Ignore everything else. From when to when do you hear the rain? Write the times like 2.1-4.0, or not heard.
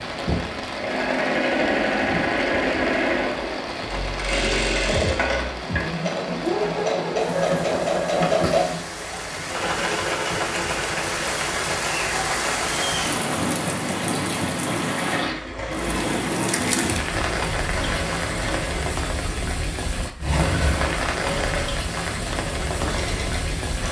0.0-23.8.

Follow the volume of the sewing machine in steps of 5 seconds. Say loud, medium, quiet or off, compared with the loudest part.
loud, loud, medium, medium, medium.